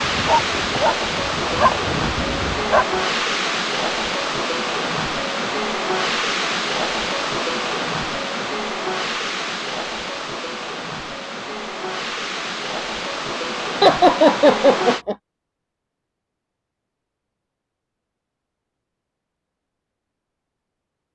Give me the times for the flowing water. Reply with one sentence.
You can hear the flowing water from 0.0 to 15.1 s.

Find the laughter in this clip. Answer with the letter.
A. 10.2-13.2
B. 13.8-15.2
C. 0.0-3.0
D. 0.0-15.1
B.